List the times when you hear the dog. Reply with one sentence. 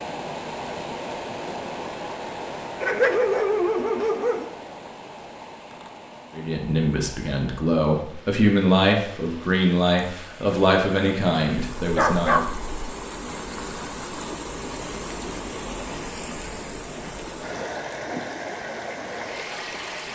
You can hear the dog from 2.8 to 4.5 s and from 11.8 to 12.8 s.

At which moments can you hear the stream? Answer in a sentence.
You can hear the stream from 0.0 to 20.1 s.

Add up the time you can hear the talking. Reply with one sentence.
You can hear the talking for 6 seconds altogether.